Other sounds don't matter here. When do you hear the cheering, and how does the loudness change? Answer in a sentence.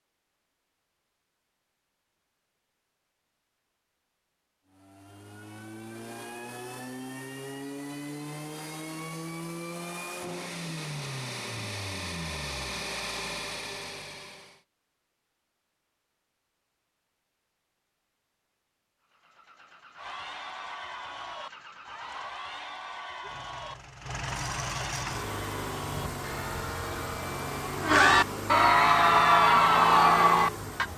You can hear the cheering from 19.9 to 30.9 s, getting louder.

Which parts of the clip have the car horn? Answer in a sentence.
You can't hear the car horn here.